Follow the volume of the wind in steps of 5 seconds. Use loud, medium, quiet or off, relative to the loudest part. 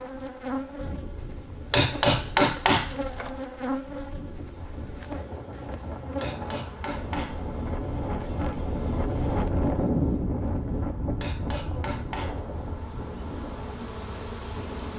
quiet, loud, loud.